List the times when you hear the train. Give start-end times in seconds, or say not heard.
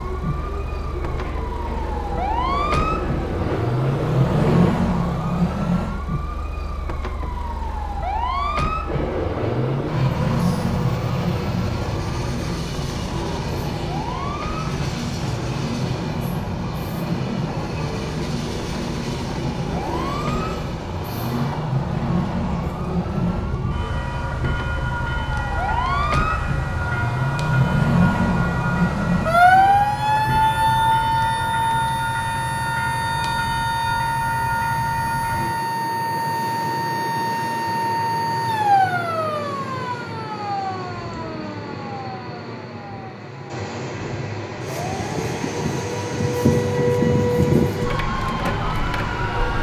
0.0-4.8, 8.8-49.5.